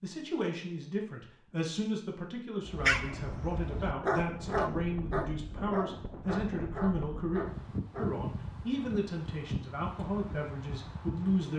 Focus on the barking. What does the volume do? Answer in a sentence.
The volume of the barking goes up, then down.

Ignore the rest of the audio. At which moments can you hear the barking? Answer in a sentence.
The barking can be heard from 2.6 to 8.1 s.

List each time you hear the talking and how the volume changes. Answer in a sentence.
You can hear the talking from 0.0 to 11.5 s, at a steady volume.